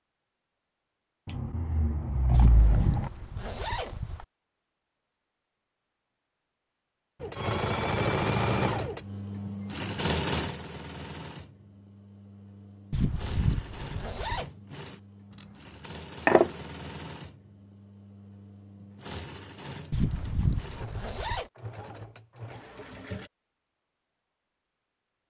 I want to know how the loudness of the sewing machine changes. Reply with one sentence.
The volume of the sewing machine goes down.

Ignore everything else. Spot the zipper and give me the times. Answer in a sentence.
The zipper can be heard from 2.3 to 4.2 s, from 12.9 to 14.4 s and from 19.9 to 21.4 s.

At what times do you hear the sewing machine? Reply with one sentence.
The sewing machine can be heard from 7.2 to 23.3 s.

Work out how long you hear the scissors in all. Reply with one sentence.
The scissors can be heard for 3 seconds in total.